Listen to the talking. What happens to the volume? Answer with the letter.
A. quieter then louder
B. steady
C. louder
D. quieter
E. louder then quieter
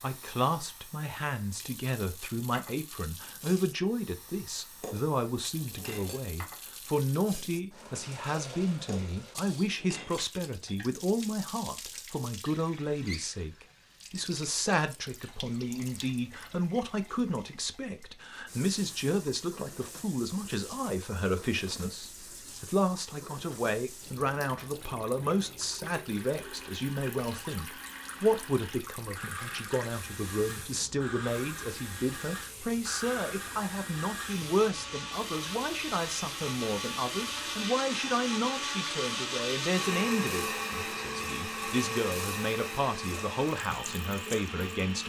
B.